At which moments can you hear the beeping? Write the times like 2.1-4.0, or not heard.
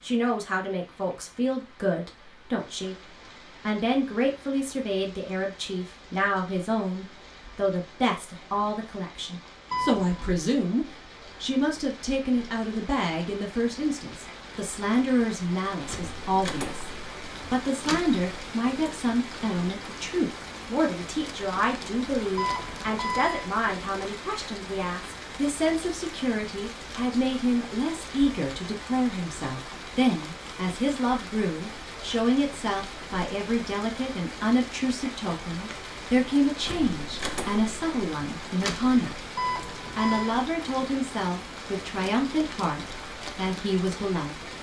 9.7-10.3, 22.4-23.5, 39.4-40.4.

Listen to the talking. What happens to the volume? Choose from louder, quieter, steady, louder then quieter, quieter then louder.
steady.